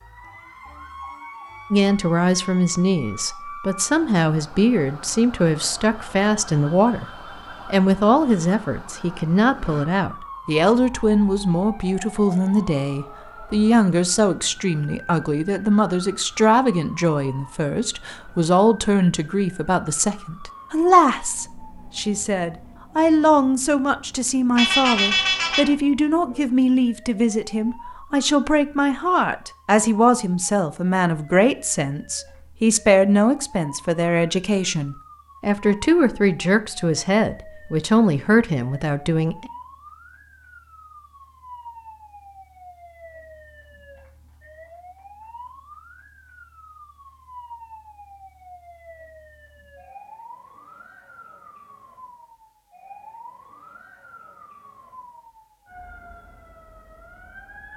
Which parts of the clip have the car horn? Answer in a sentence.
The car horn can be heard from 24.6 to 25.7 s.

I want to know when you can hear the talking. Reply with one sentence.
You can hear the talking from 1.7 to 7.0 s and from 7.7 to 39.5 s.